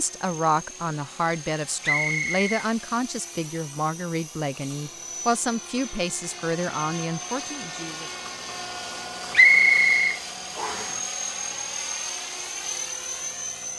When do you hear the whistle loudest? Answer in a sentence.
The volume of the whistle peaks at 10 seconds.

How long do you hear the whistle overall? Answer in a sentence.
The whistle can be heard for 2 seconds in total.